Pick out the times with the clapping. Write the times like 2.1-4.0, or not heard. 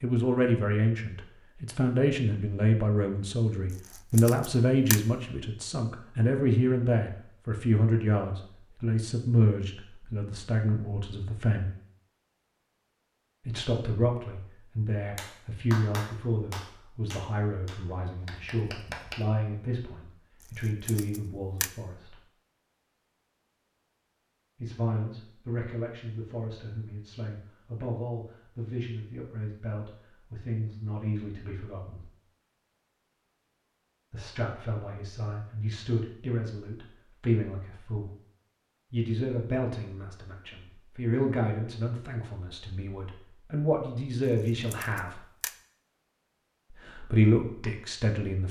15.2-19.3.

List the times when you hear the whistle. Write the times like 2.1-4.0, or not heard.
not heard.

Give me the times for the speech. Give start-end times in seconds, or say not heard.
0.0-11.7, 13.4-22.2, 24.6-32.1, 34.1-38.1, 38.9-45.2, 46.9-48.4.